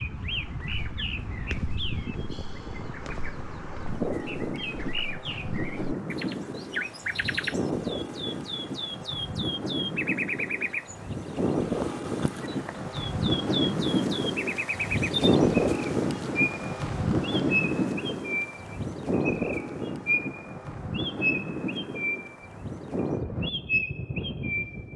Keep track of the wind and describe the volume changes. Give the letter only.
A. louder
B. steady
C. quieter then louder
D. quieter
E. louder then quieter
E.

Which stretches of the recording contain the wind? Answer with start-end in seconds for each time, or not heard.
0.0-24.9.